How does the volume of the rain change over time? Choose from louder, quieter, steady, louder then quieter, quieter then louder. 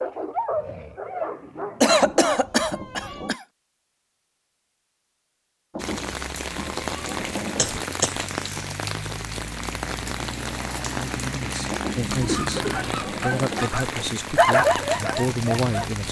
steady.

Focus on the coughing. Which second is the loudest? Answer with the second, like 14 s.
2 s.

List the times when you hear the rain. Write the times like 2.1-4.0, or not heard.
5.8-16.0.